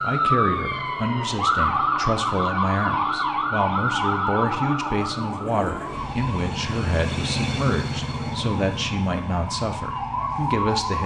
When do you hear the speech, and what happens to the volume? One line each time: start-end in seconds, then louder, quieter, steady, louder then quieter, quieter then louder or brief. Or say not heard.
0.0-11.0 steady.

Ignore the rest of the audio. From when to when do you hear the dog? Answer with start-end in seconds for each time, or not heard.
not heard.